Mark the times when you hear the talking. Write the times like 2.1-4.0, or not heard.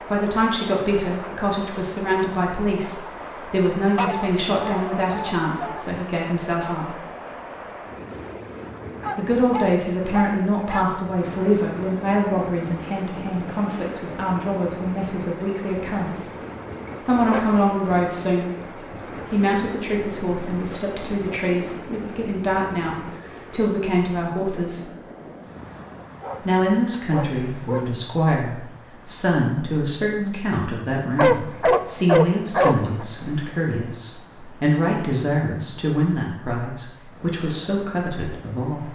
0.0-7.0, 9.2-16.3, 17.0-24.9, 26.4-38.8.